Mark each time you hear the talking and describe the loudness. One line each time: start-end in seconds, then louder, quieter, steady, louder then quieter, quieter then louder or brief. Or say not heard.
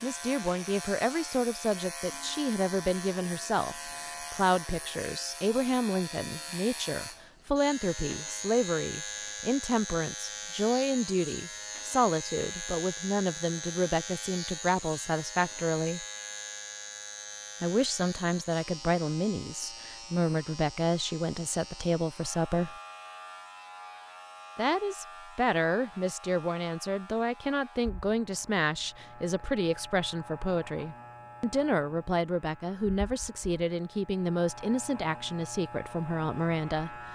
0.0-16.1 steady
17.6-22.8 steady
24.6-37.0 steady.